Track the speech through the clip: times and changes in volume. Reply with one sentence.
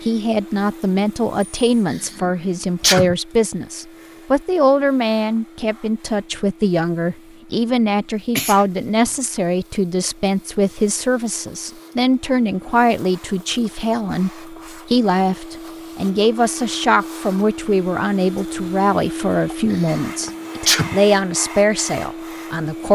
The speech can be heard from 0.0 to 22.9 s, at a steady volume.